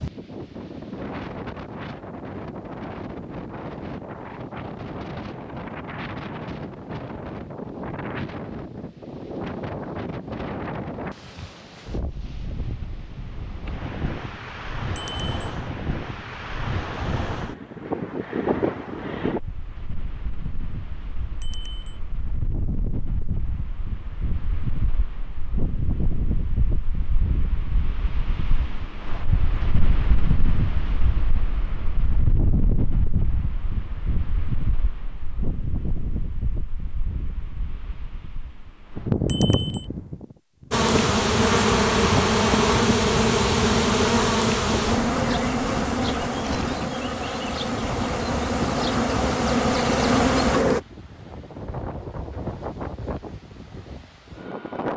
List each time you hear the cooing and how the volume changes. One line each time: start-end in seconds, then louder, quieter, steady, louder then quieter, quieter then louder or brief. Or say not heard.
not heard.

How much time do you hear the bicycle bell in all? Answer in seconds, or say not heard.
2 s.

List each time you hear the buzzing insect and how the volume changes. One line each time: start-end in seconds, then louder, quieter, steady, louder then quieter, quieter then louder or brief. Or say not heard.
40.7-50.8 quieter then louder.